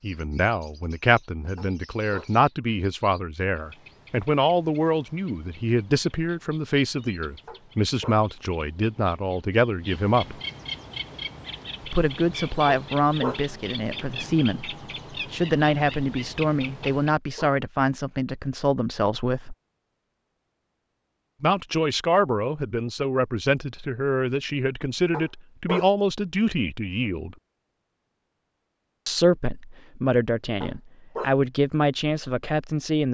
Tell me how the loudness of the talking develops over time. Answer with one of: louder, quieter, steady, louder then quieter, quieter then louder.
steady.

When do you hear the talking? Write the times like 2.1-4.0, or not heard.
0.0-10.4, 11.8-19.6, 21.4-27.4, 29.1-33.0.